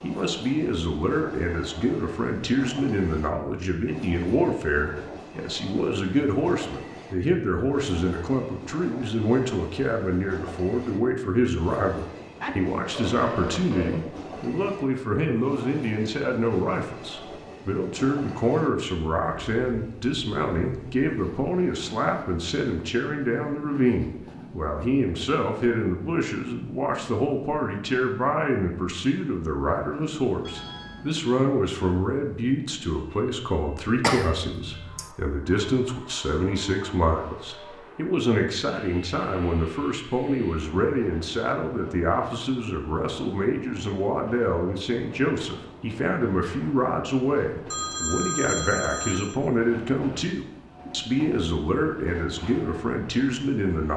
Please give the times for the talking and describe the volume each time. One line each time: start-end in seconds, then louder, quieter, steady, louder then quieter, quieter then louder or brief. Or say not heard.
0.0-53.9 steady.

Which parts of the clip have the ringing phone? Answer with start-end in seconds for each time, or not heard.
12.4-14.1, 30.4-31.1, 47.7-49.4.